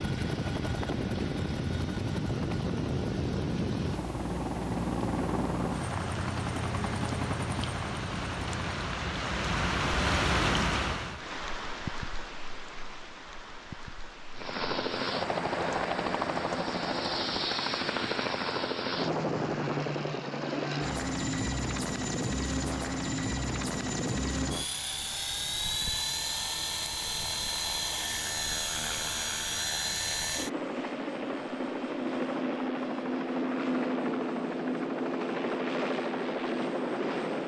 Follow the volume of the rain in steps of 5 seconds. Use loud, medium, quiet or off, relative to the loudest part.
medium, loud, loud, medium, off, off, off, off.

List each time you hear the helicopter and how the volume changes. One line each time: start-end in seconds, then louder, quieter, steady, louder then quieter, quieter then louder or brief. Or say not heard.
0.0-8.8 steady
14.3-37.4 steady.